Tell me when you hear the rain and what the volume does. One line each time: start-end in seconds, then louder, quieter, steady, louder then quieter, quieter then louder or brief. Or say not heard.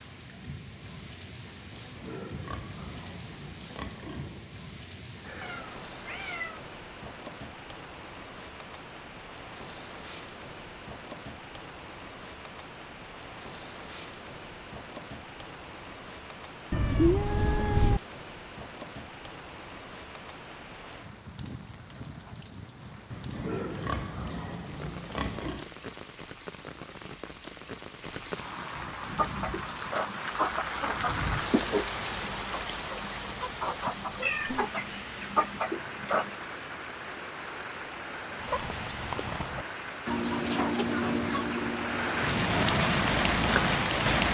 0.0-44.2 louder.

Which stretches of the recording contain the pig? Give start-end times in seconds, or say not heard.
1.7-4.5, 23.1-25.8.